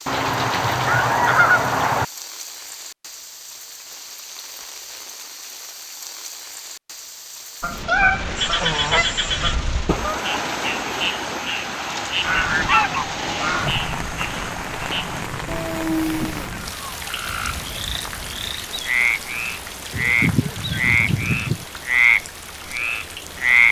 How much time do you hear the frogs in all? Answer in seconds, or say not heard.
15 s.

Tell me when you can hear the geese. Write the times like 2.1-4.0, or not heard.
0.1-2.0, 7.6-10.2, 12.2-13.8, 19.9-21.6.